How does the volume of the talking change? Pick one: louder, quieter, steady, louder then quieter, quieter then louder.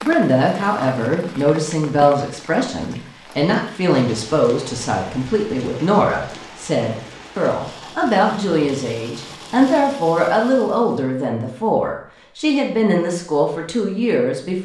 steady.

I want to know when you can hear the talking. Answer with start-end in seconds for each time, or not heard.
0.0-14.5.